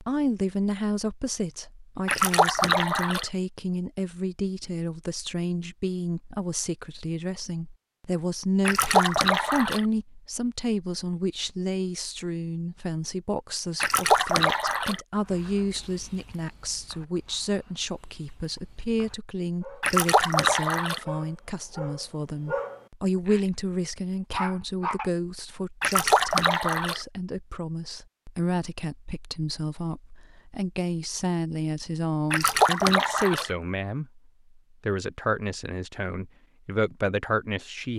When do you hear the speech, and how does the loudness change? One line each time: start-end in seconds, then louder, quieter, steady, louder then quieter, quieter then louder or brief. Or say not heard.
0.0-37.9 steady.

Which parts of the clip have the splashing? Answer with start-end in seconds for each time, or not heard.
2.0-3.2, 8.7-9.8, 13.8-15.0, 19.8-21.1, 25.8-27.0, 32.3-33.5.